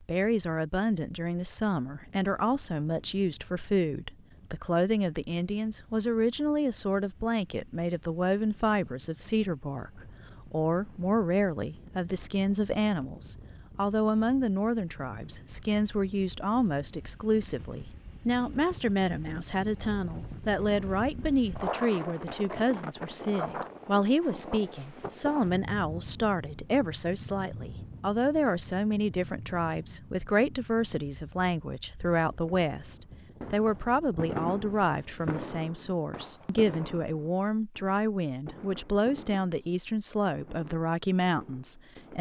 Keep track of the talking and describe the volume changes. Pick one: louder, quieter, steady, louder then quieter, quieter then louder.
steady.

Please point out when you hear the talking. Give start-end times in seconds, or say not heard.
0.0-42.1.